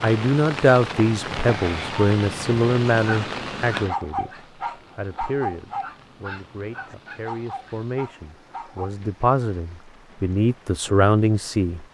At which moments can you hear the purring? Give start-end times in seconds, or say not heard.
not heard.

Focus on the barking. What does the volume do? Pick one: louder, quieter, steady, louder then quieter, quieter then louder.
quieter.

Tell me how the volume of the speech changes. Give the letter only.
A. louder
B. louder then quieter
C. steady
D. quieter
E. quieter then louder
E.